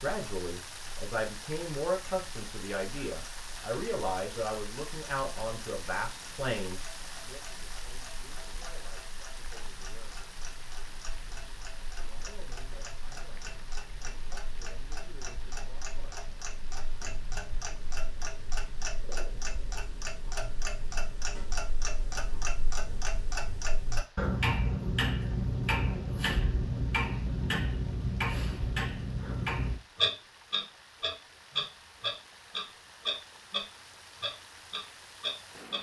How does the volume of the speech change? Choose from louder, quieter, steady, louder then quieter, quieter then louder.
quieter.